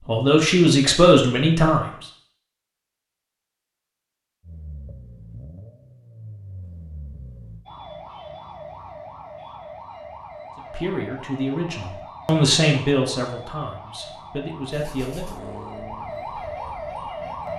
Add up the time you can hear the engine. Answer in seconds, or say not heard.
6 s.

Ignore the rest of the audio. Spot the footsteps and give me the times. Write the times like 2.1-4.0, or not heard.
not heard.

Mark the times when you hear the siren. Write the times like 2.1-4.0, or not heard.
7.7-17.5.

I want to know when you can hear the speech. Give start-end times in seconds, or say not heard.
0.1-2.0, 10.6-15.2.